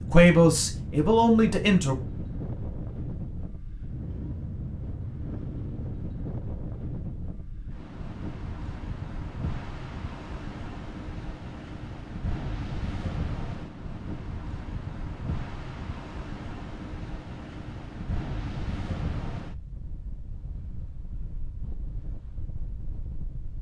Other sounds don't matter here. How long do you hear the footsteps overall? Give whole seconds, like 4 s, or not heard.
not heard.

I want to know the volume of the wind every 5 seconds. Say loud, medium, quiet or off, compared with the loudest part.
loud, loud, loud, loud, medium.